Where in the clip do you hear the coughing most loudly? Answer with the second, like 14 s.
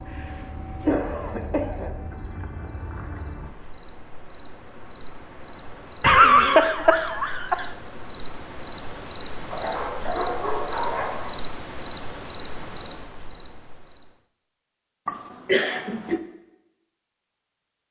6 s.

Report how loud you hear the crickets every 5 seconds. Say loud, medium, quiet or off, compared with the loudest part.
quiet, loud, loud, off.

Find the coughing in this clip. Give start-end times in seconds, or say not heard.
0.8-1.9, 6.0-7.7, 15.1-16.2.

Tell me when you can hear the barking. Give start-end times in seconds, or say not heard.
9.5-11.3.